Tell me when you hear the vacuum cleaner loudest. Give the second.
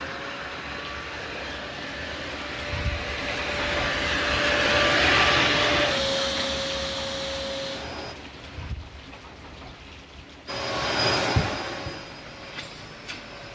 5 s.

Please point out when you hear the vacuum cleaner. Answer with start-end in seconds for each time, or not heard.
0.0-8.2, 10.4-13.5.